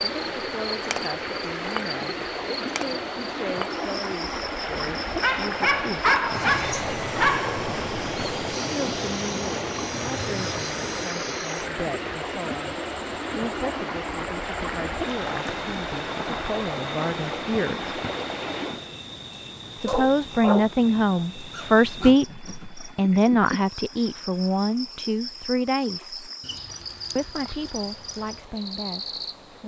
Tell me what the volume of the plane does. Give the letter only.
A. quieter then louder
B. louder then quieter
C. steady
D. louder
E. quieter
C.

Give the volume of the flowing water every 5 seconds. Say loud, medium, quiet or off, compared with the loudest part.
loud, loud, loud, loud, quiet, quiet.